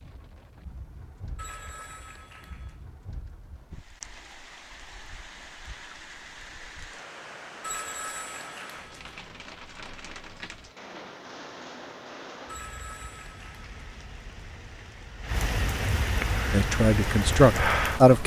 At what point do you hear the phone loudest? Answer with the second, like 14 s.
8 s.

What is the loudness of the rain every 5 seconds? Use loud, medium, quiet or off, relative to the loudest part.
quiet, quiet, quiet, loud.